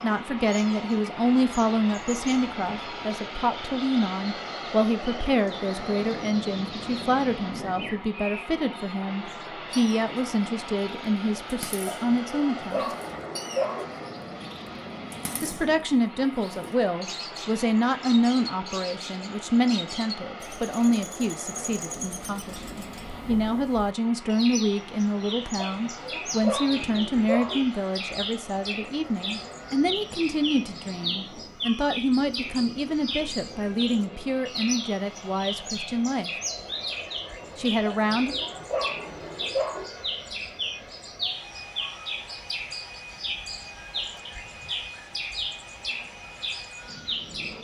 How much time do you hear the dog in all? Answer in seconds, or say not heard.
6 s.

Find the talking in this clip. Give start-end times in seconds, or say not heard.
0.0-12.9, 15.4-36.3, 37.5-38.4.